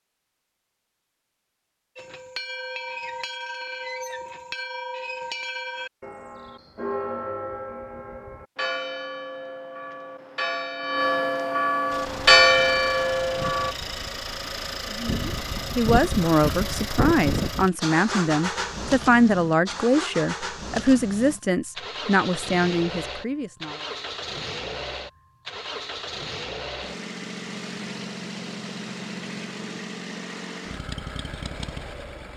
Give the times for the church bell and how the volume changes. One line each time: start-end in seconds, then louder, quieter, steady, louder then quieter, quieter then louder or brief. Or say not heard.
1.9-13.8 louder.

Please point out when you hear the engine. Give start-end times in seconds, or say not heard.
11.9-32.3.